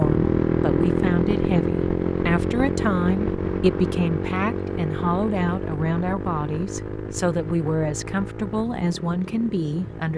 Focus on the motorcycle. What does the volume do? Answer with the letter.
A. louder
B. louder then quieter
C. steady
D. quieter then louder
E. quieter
E.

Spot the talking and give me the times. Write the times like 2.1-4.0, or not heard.
0.0-10.1.